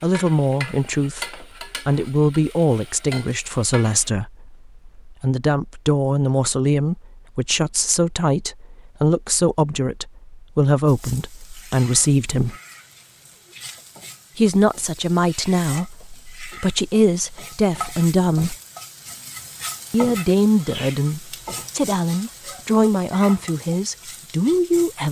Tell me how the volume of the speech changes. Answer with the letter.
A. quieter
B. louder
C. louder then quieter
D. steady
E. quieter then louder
D.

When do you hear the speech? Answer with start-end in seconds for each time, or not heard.
0.0-12.6, 14.3-18.6, 19.9-25.0.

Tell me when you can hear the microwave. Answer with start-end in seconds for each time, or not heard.
not heard.